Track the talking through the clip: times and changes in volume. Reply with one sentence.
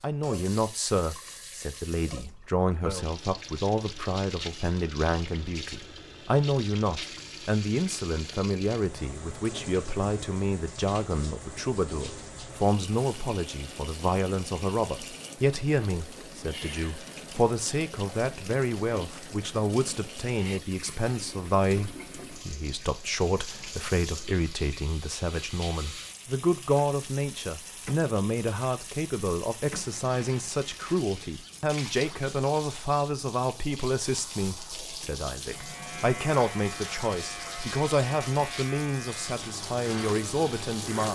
You can hear the talking from 0.0 to 41.1 s, at a steady volume.